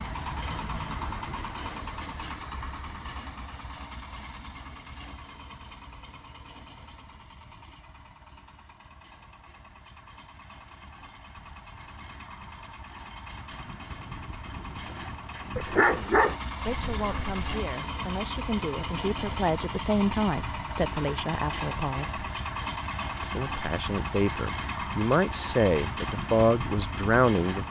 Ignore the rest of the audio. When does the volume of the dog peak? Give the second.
16 s.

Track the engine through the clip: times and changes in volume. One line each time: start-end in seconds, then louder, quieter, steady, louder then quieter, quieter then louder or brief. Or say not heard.
0.0-27.6 quieter then louder.